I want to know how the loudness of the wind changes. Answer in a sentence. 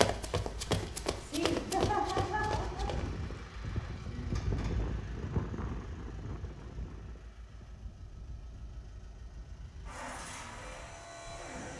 The loudness of the wind goes up, then down.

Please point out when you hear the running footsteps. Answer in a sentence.
You can hear the running footsteps from 0.0 to 3.1 s.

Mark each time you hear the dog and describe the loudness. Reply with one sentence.
You can't hear the dog here.